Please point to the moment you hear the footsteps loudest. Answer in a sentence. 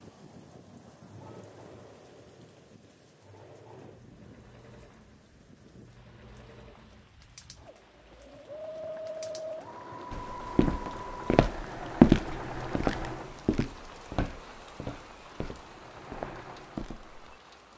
The volume of the footsteps peaks at 12 seconds.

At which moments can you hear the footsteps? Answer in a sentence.
You can hear the footsteps from 10.1 to 17.2 s.